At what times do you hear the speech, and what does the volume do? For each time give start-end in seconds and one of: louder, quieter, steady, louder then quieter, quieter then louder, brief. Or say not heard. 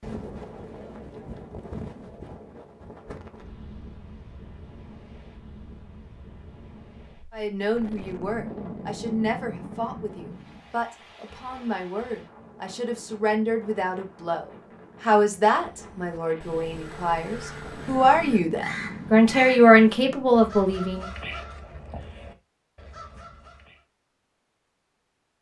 7.3-21.1 louder.